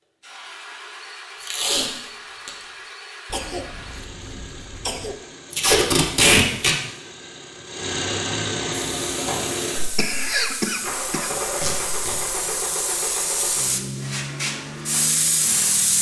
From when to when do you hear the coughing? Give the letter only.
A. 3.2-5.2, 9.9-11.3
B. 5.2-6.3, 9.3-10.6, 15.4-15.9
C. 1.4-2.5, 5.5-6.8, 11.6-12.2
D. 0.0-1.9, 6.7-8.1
A.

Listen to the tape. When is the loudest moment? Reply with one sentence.
The loudest moment of the tape is at 6 seconds.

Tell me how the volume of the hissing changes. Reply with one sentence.
The loudness of the hissing goes up.